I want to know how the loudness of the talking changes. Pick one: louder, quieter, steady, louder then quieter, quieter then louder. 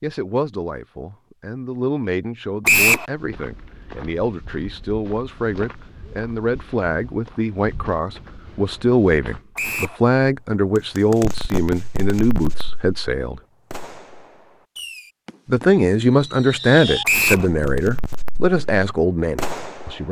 louder.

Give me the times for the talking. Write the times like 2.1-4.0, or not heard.
0.0-13.4, 15.4-20.0.